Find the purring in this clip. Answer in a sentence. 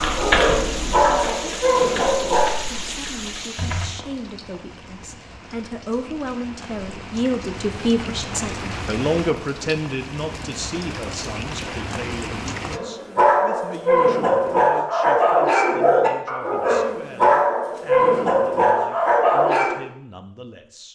You can't hear the purring here.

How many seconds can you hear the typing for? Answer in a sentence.
You can hear the typing for 4 seconds altogether.